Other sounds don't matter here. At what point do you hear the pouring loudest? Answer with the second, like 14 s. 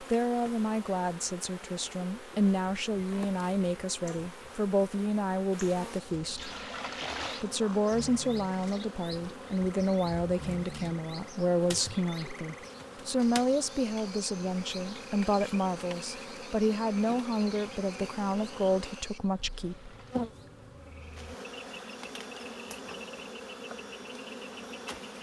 7 s.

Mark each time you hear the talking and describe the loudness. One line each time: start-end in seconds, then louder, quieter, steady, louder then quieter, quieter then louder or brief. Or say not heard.
0.0-6.5 steady
7.4-19.9 steady.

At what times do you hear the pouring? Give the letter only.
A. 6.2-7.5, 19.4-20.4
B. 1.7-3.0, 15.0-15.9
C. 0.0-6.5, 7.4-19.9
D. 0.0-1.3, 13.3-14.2
A.